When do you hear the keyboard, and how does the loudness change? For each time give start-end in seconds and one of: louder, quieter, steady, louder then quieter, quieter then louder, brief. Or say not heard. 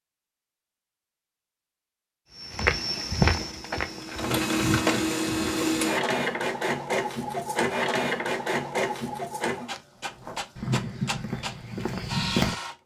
not heard.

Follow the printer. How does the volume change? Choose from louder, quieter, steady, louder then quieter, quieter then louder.
quieter.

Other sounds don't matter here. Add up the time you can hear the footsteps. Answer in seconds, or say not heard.
6 s.